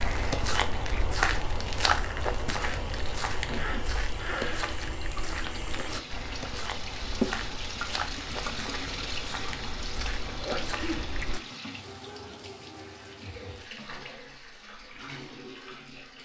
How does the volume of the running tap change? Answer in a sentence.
The loudness of the running tap goes up, then down.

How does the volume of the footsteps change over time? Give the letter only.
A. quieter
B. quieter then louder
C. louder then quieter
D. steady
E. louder
A.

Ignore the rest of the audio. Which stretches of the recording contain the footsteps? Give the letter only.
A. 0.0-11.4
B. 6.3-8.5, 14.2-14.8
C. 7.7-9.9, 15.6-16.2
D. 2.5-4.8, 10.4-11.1
A.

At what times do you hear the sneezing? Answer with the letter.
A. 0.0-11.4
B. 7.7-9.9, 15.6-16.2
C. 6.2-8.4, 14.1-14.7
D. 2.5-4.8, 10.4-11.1
D.